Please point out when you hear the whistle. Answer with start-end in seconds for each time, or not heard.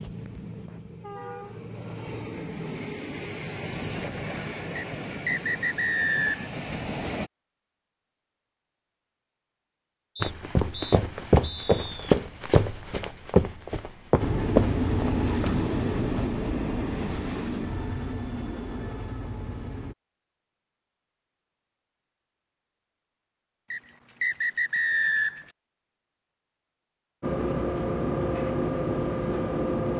4.8-6.5, 10.2-11.9, 23.7-25.5.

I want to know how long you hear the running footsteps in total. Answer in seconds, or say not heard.
5 s.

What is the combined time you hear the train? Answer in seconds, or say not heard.
16 s.